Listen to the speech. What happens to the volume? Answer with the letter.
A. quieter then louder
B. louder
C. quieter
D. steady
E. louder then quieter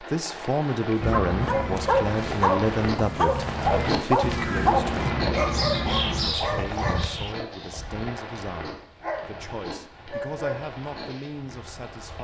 C.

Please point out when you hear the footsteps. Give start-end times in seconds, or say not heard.
not heard.